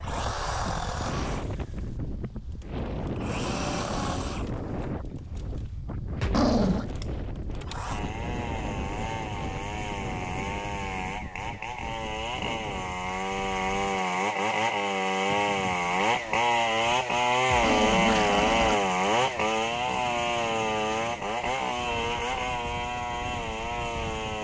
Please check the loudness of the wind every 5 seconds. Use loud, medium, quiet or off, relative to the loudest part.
loud, loud, medium, medium, medium.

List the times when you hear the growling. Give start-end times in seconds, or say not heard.
6.2-6.8, 17.4-18.8.